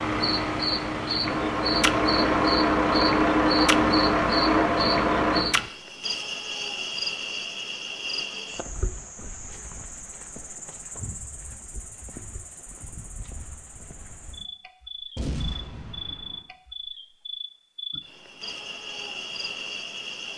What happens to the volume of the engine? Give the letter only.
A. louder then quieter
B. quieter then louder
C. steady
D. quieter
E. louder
E.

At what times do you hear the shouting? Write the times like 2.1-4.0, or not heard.
not heard.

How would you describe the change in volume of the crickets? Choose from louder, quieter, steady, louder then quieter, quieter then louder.
quieter then louder.